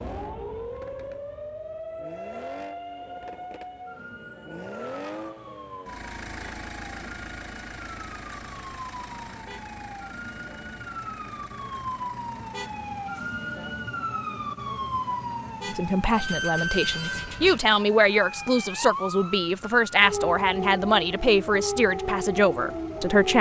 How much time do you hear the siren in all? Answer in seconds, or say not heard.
23 s.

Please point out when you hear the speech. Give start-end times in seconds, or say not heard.
15.7-23.3.